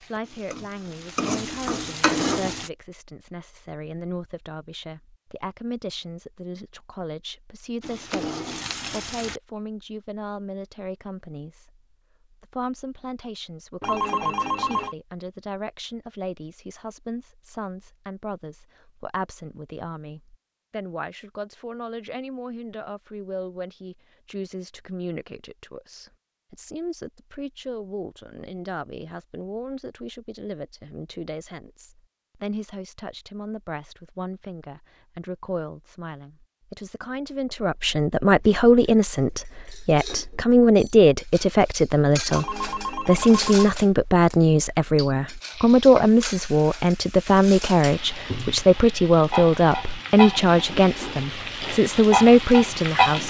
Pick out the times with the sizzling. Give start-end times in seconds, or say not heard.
0.0-2.7, 7.8-9.4, 45.4-53.2.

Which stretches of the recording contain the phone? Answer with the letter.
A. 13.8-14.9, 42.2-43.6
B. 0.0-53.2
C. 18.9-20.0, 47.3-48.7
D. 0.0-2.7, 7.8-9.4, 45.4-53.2
A.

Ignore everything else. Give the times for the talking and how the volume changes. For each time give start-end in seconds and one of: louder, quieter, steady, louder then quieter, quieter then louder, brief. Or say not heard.
0.0-53.2 louder.